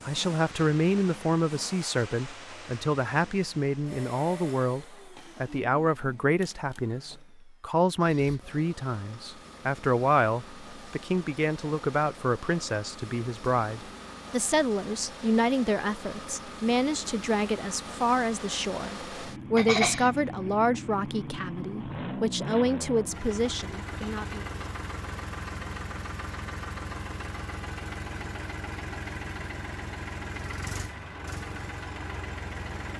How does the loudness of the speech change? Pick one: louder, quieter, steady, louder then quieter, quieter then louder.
steady.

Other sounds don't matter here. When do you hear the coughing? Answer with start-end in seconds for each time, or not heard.
19.6-20.1.